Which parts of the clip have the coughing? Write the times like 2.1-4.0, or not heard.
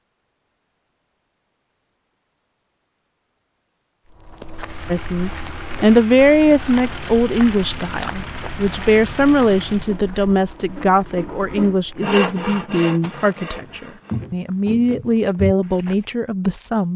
not heard.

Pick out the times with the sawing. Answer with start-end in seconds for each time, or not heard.
9.8-14.2.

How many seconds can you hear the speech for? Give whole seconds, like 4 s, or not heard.
12 s.